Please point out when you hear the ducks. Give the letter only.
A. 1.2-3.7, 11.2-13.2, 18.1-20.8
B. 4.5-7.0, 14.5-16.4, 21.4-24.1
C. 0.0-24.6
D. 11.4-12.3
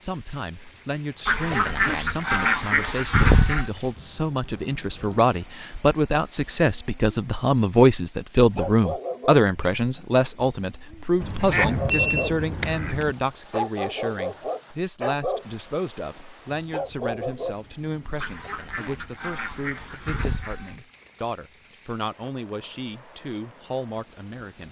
A.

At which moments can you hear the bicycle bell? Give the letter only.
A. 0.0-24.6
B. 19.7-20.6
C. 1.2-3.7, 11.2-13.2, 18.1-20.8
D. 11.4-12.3
D.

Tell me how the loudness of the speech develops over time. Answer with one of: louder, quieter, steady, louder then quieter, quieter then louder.
louder then quieter.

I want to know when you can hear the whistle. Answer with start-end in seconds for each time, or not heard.
not heard.